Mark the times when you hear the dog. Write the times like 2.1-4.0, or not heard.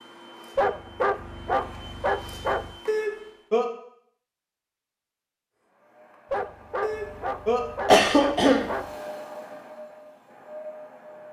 0.6-2.8, 6.3-8.9.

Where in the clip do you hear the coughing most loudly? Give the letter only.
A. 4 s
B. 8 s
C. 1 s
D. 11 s
B.